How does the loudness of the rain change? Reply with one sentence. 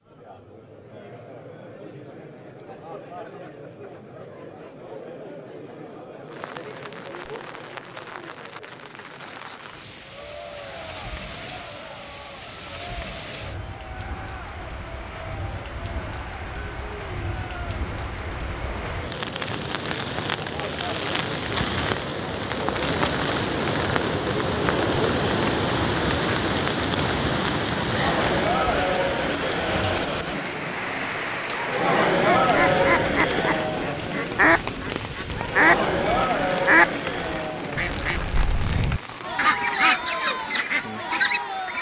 The volume of the rain goes up, then down.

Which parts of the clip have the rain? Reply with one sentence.
The rain can be heard from 6.2 to 41.7 s.